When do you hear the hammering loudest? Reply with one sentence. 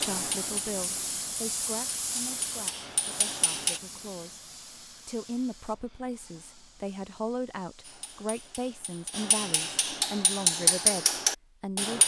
The volume of the hammering peaks at 11 seconds.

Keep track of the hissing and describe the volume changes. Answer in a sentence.
The loudness of the hissing goes down.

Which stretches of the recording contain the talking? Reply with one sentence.
The talking can be heard from 0.0 to 12.0 s.